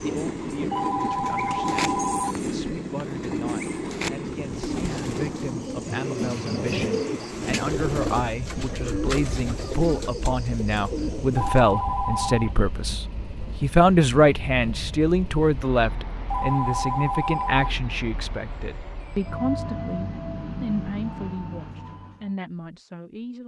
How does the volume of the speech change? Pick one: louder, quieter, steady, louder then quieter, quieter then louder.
louder then quieter.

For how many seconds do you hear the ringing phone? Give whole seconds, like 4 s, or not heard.
4 s.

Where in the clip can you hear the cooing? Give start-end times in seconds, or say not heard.
0.8-11.7.